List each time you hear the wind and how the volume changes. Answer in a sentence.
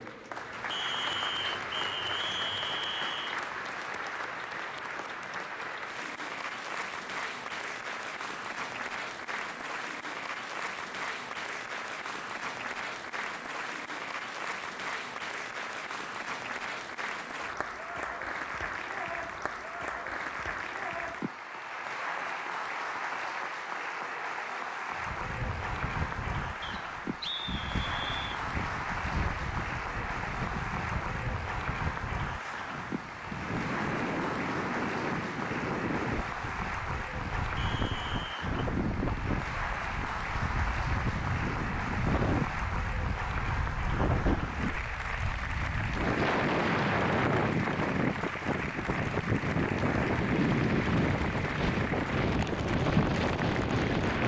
The wind can be heard from 24.9 to 54.2 s, getting louder.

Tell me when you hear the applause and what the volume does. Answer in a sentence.
You can hear the applause from 0.0 to 54.2 s, at a steady volume.